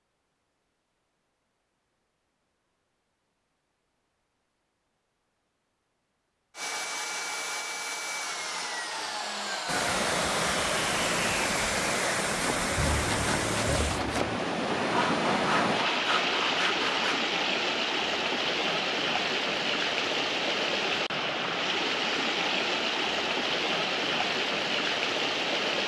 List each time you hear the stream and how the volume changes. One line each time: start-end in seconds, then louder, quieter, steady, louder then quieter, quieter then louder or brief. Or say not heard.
9.7-25.8 steady.